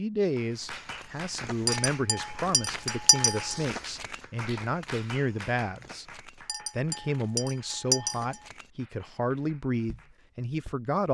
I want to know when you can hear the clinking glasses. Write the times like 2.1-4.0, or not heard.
1.6-3.5, 6.5-8.4.